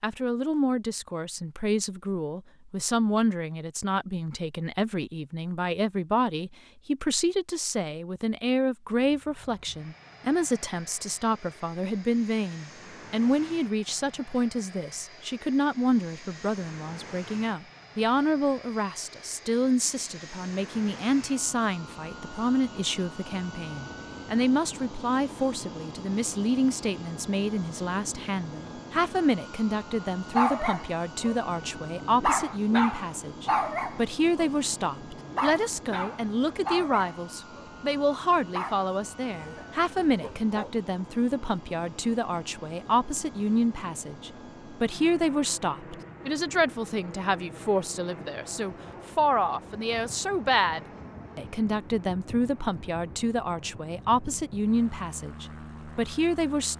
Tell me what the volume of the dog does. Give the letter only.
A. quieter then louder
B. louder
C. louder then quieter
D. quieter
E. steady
D.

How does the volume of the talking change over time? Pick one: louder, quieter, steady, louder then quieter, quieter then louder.
steady.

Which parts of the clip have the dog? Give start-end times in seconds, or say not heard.
30.3-40.8.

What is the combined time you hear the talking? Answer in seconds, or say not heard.
57 s.